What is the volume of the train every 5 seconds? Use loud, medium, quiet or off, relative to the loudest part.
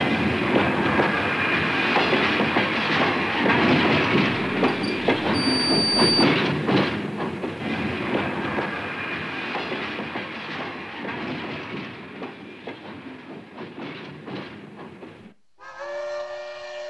loud, loud, quiet, quiet.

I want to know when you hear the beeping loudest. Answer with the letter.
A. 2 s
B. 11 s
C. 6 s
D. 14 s
C.